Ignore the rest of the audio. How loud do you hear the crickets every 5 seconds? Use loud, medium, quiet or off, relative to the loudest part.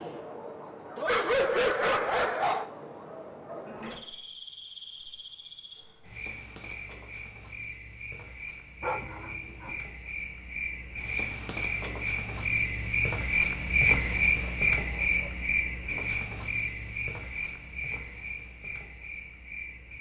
quiet, quiet, loud, medium.